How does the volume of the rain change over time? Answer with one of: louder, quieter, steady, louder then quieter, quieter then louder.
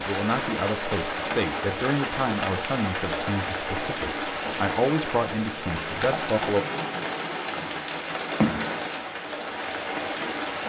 steady.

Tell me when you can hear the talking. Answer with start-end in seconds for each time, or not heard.
0.0-6.7.